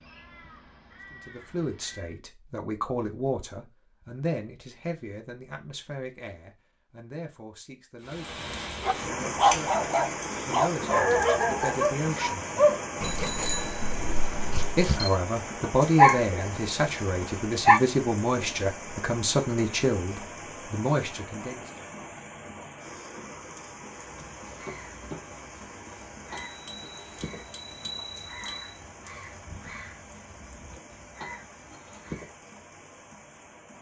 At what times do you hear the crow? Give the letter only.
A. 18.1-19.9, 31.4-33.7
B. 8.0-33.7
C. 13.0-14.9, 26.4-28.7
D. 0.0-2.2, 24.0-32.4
D.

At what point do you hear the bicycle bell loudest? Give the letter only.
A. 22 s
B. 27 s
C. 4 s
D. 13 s
D.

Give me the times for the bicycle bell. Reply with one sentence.
The bicycle bell can be heard from 13.0 to 14.9 s and from 26.4 to 28.7 s.